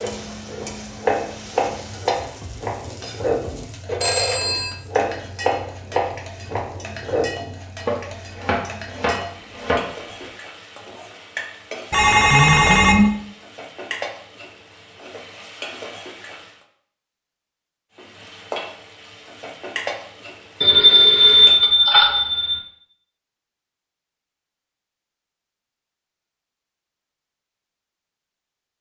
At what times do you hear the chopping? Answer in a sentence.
You can hear the chopping from 0.0 to 10.3 s.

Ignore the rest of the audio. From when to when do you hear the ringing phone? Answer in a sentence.
You can hear the ringing phone from 4.0 to 4.8 s, from 11.9 to 13.1 s and from 20.6 to 22.6 s.